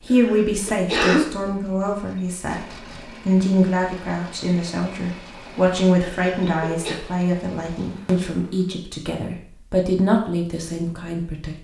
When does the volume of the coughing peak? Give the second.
1 s.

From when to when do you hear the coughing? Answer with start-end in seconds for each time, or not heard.
0.1-1.2, 6.0-7.0.